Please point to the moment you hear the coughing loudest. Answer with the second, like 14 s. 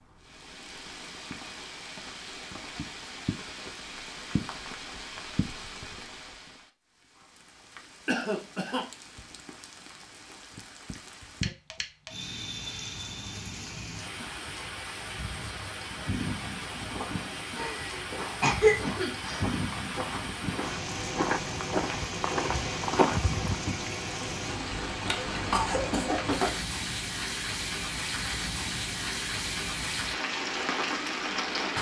19 s.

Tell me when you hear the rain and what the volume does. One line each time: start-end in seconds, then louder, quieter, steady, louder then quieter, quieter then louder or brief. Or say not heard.
0.0-31.7 louder.